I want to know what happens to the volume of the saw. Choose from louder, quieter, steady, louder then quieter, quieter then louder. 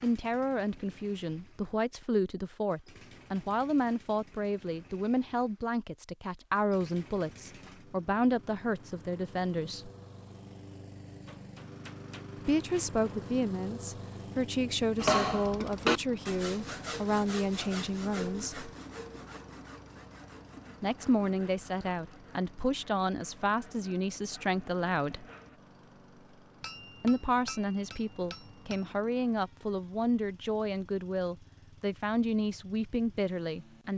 quieter.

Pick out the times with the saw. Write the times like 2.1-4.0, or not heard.
14.9-25.6.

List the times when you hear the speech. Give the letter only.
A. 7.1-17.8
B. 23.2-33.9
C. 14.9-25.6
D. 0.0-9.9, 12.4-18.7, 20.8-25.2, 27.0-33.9
D.